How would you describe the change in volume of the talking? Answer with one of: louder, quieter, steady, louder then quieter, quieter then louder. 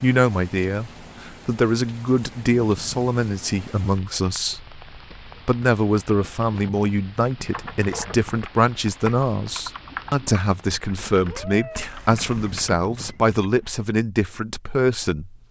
steady.